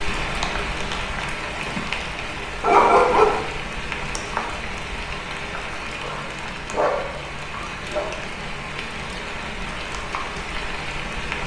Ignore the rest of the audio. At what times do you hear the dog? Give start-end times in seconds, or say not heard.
2.6-3.4, 6.0-8.1.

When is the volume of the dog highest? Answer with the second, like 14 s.
3 s.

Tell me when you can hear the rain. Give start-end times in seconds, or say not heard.
0.0-11.4.